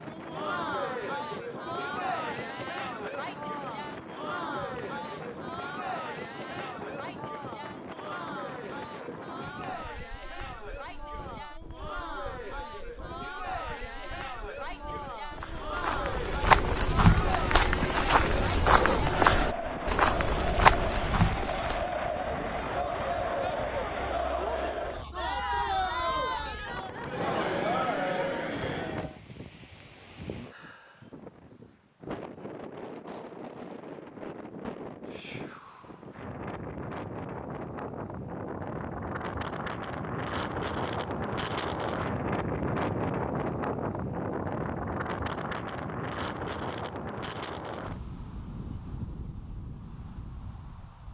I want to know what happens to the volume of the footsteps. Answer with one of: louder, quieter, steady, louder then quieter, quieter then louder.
steady.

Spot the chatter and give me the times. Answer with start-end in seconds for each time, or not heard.
0.1-29.2.